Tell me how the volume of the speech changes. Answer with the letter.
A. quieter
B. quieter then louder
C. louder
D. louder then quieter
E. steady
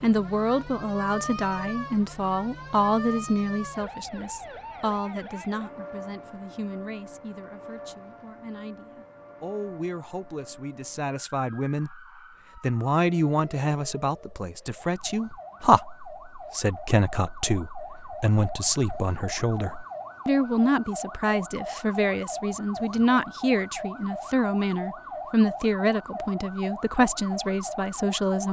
B.